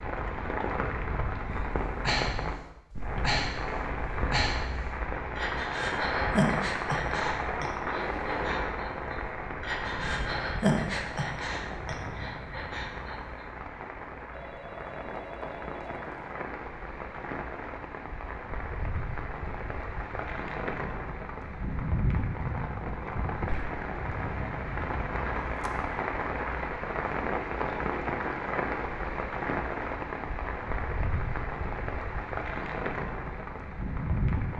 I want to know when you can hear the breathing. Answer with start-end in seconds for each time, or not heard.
1.6-13.4.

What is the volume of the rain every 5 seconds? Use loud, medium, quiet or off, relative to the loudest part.
loud, loud, medium, medium, loud, loud, loud.